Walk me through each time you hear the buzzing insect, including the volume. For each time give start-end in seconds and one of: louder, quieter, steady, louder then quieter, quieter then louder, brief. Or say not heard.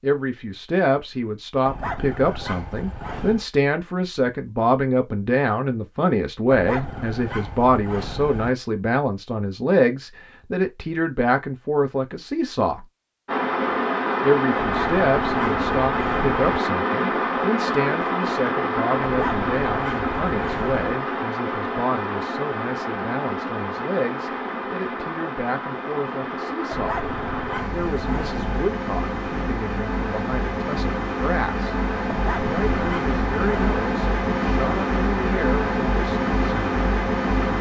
not heard.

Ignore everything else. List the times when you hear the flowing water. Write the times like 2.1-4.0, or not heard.
13.2-37.5.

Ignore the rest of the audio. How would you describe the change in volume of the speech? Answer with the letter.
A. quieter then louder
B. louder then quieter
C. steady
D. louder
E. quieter
E.